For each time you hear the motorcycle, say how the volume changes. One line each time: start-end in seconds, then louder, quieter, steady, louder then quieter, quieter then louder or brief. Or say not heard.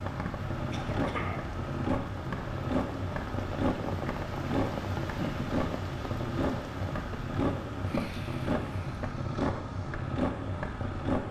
0.0-11.2 steady.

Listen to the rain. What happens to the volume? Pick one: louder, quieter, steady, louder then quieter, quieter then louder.
louder then quieter.